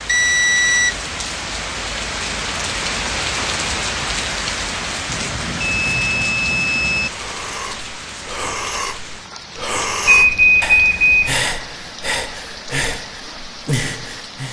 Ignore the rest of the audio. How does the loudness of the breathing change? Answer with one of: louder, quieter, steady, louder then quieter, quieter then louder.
steady.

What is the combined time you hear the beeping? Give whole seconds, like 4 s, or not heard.
4 s.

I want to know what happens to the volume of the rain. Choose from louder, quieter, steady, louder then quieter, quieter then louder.
quieter.